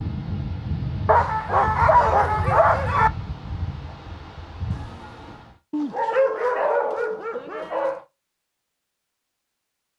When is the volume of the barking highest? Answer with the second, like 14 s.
2 s.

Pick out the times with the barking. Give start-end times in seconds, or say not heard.
1.1-3.1, 5.7-8.1.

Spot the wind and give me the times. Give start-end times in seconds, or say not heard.
0.0-5.5.